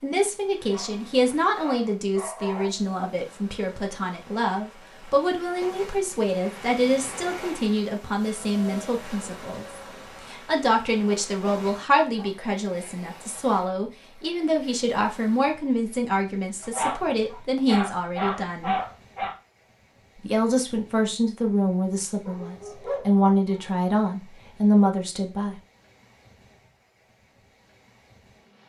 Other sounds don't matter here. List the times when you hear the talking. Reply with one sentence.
You can hear the talking from 0.0 to 9.7 s, from 10.2 to 18.8 s and from 20.2 to 25.6 s.